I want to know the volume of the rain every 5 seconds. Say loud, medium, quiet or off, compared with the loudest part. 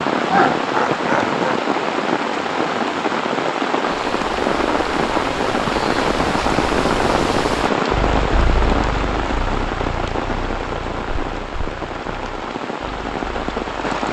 loud, loud, medium.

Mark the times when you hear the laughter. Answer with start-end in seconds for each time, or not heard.
0.2-1.4.